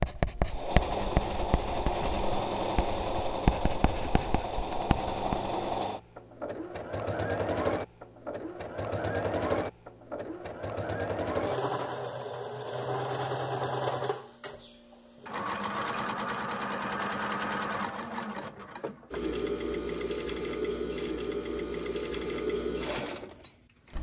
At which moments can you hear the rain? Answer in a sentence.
You can't hear the rain here.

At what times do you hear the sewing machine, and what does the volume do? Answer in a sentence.
You can hear the sewing machine from 0.0 to 23.9 s, at a steady volume.